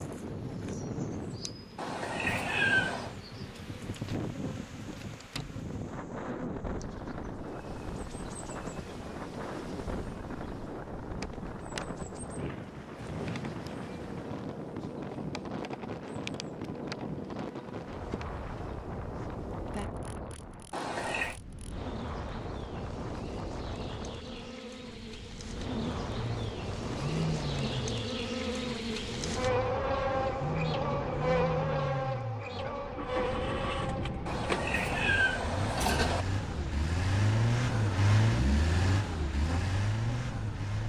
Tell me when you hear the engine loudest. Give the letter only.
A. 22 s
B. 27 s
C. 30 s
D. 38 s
D.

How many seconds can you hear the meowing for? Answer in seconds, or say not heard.
4 s.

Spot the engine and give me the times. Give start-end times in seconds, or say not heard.
25.6-40.8.